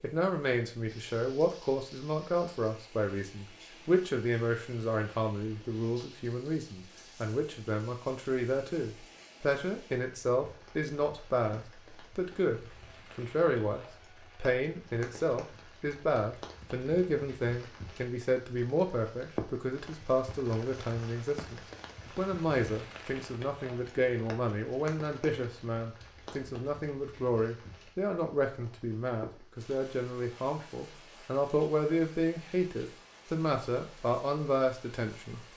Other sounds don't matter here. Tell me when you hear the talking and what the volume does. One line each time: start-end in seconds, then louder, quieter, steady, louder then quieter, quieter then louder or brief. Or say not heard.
0.0-35.5 steady.